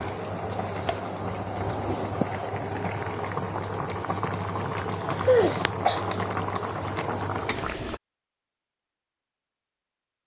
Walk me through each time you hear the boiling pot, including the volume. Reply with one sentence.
You can hear the boiling pot from 0.0 to 8.0 s, at a steady volume.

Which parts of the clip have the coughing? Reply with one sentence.
The coughing can be heard from 4.8 to 6.0 s.